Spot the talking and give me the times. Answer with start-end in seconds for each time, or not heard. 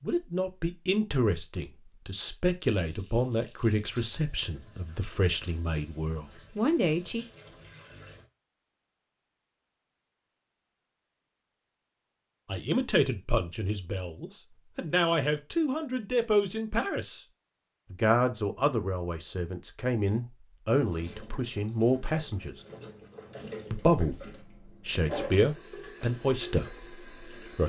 0.0-7.2, 12.4-17.2, 17.9-22.6, 23.7-27.6.